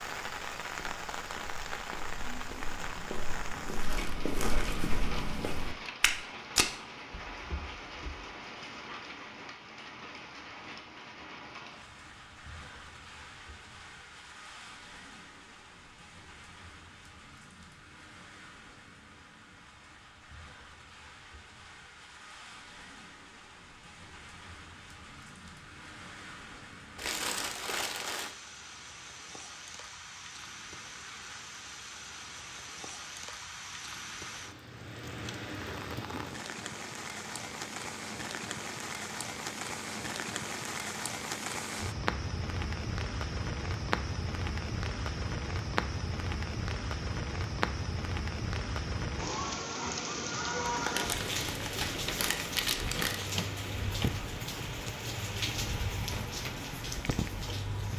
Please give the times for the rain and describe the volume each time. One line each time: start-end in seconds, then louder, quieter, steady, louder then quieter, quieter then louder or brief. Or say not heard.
0.0-57.9 quieter then louder.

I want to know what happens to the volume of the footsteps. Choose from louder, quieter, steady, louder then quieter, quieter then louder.
louder.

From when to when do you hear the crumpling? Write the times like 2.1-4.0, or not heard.
3.8-4.8, 26.9-28.4, 50.6-53.3.